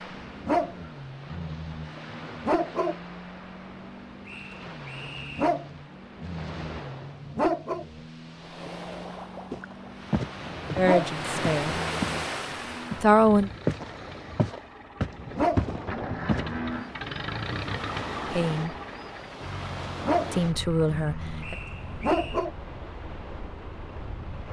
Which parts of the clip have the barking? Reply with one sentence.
The barking can be heard from 0.1 to 3.0 s, from 5.0 to 7.8 s, from 10.7 to 12.2 s, from 15.1 to 16.6 s and from 19.9 to 22.5 s.